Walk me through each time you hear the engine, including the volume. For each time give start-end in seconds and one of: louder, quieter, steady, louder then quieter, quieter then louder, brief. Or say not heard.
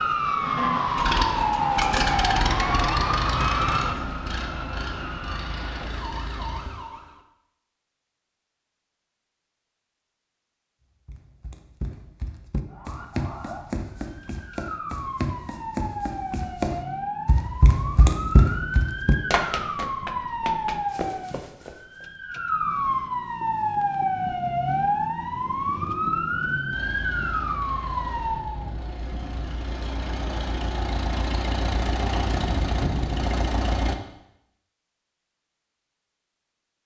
0.2-6.7 quieter
26.7-34.0 louder.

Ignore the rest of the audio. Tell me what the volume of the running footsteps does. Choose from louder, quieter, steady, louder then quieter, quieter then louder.
louder then quieter.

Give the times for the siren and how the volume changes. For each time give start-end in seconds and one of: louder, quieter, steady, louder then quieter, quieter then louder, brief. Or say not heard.
0.0-7.2 quieter
12.7-28.7 louder.